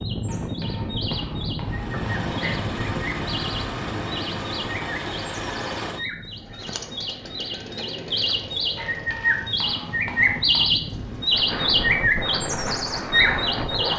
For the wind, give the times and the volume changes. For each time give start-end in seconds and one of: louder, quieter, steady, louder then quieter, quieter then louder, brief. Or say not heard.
0.0-13.9 quieter then louder.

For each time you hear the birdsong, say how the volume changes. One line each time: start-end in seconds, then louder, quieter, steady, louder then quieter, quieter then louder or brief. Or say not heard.
0.0-13.9 louder.